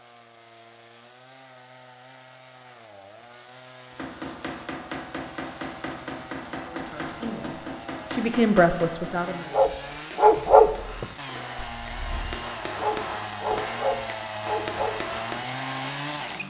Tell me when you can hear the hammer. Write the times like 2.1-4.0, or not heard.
3.9-15.4.